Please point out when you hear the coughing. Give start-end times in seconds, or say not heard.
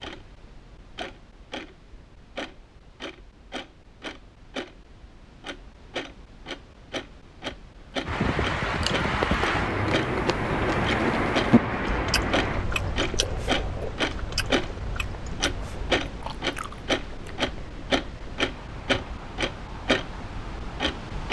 not heard.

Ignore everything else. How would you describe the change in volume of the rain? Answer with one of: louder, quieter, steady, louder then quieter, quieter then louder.
quieter.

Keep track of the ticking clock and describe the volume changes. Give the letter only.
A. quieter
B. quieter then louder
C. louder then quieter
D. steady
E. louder
E.